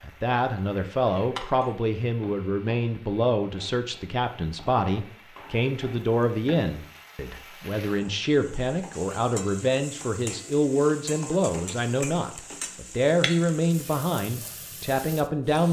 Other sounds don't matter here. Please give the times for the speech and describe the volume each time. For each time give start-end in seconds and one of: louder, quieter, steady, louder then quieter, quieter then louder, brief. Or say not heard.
0.0-15.6 steady.